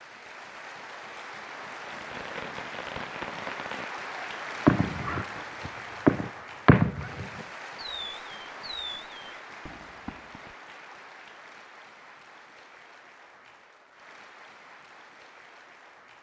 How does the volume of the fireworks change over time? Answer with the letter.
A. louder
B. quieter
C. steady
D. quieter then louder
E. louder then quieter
E.